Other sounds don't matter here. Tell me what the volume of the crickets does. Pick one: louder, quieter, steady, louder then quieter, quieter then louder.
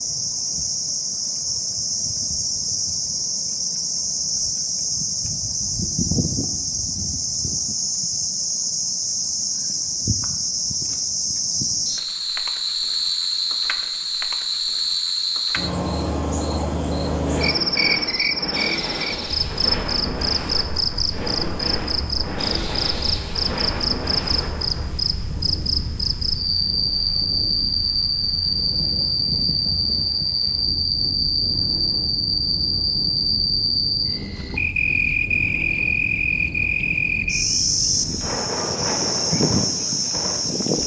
steady.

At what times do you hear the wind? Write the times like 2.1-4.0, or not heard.
17.1-40.8.